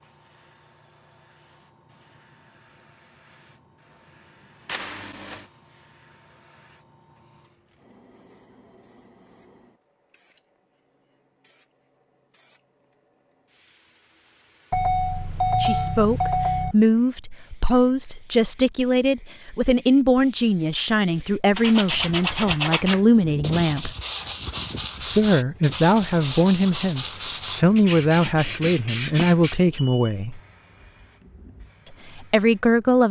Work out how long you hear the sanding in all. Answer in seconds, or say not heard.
8 s.